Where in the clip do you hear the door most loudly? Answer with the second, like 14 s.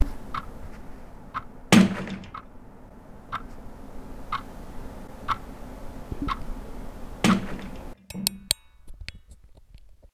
2 s.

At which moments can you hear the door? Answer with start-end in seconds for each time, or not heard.
1.7-2.2, 7.2-8.4.